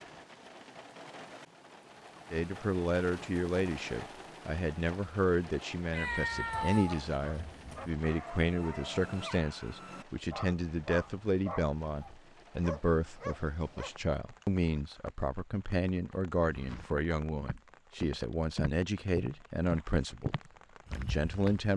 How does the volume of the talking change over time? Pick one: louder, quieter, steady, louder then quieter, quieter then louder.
steady.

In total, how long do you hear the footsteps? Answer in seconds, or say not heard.
5 s.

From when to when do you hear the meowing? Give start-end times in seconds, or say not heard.
5.9-8.0.